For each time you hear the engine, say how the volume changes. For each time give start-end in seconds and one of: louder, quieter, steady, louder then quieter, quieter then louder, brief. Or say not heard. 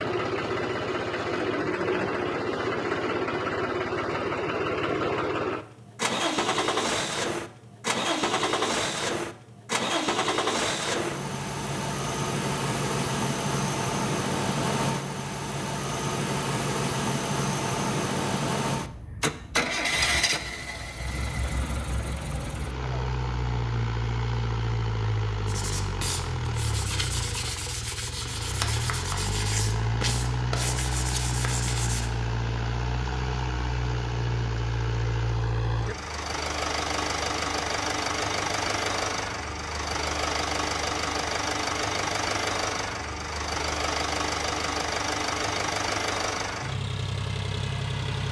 0.0-48.2 steady.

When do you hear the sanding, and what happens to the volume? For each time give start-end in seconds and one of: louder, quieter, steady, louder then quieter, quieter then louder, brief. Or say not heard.
25.4-32.1 steady.